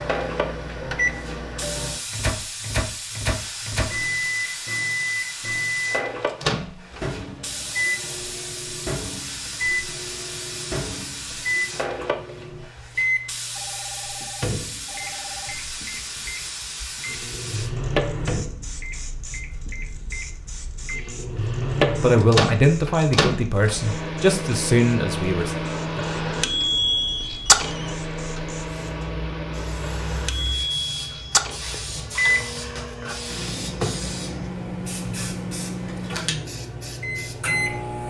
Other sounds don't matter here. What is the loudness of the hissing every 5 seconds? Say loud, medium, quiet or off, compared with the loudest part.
loud, loud, loud, loud, medium, medium, loud, loud.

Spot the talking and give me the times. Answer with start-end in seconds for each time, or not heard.
21.9-25.6.